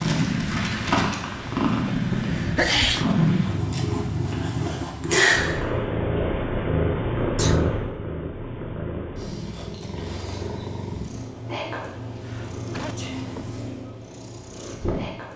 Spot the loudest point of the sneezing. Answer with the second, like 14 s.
3 s.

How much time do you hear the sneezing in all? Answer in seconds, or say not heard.
3 s.